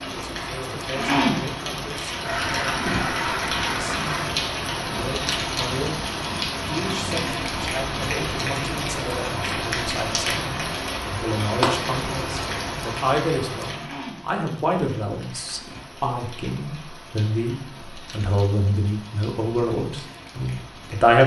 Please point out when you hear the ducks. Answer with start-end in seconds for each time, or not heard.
2.2-4.2.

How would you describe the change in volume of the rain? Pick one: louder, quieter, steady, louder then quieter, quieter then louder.
quieter.